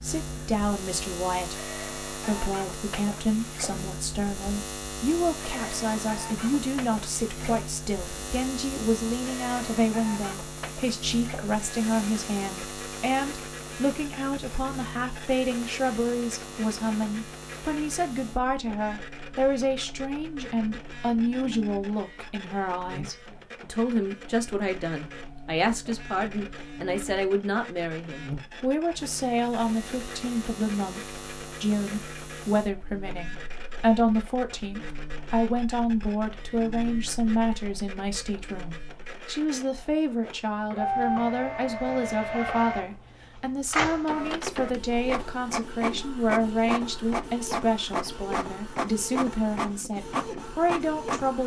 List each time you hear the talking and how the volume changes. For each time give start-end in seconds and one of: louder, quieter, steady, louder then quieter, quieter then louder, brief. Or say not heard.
0.0-51.4 steady.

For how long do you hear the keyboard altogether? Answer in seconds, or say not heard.
not heard.